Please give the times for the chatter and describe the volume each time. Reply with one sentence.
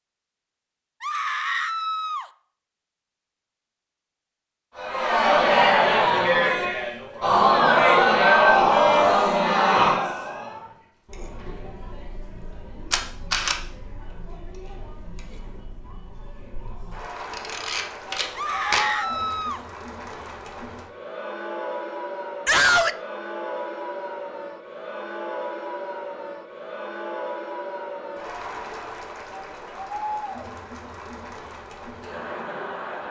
The chatter can be heard from 4.8 to 33.0 s, getting quieter then louder.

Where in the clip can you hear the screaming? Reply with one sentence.
The screaming can be heard from 1.0 to 2.2 s, from 18.4 to 19.6 s and from 22.4 to 22.9 s.